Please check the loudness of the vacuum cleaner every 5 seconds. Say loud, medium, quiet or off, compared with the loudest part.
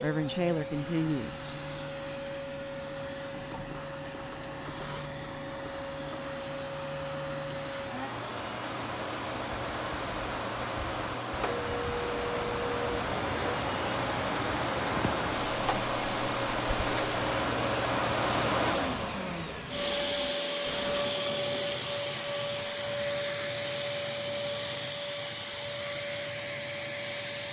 medium, medium, loud, loud, loud, medium.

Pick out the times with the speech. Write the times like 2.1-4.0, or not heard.
0.0-1.6.